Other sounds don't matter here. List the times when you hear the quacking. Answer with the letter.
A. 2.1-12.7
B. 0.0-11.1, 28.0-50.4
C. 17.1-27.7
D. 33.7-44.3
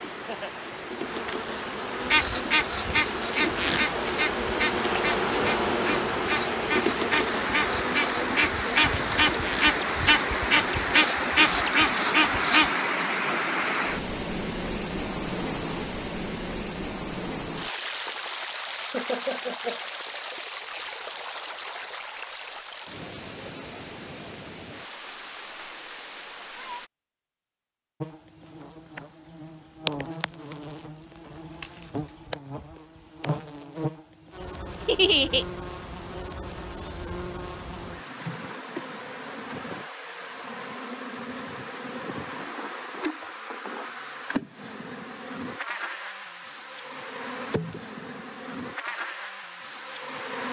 A.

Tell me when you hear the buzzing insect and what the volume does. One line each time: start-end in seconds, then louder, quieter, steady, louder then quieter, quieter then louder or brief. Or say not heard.
0.0-11.1 louder then quieter
28.0-50.4 steady.